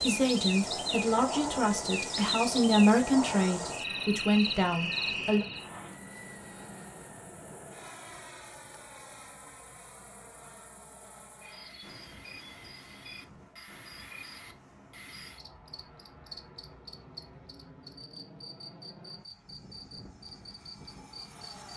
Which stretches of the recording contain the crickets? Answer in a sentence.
You can hear the crickets from 0.0 to 21.7 s.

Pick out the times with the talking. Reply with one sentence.
The talking can be heard from 0.0 to 5.5 s.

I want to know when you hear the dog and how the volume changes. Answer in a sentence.
You can't hear the dog here.